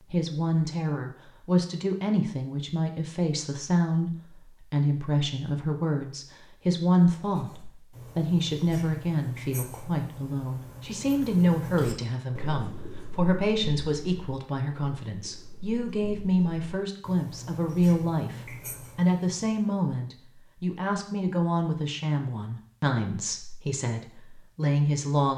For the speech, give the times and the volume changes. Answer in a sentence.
The speech can be heard from 0.1 to 25.3 s, at a steady volume.